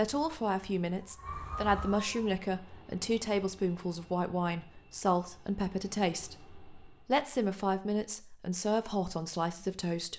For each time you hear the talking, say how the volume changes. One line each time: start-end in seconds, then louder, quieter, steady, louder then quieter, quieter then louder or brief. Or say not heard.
0.0-10.1 steady.